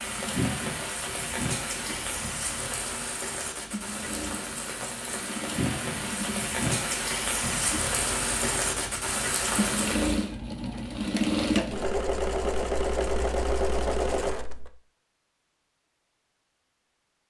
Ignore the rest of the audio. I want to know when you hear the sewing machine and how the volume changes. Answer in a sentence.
You can hear the sewing machine from 0.0 to 14.7 s, getting louder.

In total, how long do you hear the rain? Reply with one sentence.
You can hear the rain for 10 seconds altogether.